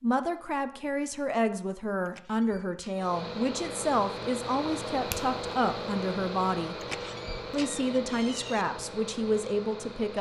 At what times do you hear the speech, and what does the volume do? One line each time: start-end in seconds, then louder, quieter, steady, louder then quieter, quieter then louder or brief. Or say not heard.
0.0-6.8 steady
7.5-10.1 brief.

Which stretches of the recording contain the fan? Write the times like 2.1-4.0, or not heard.
2.9-10.1.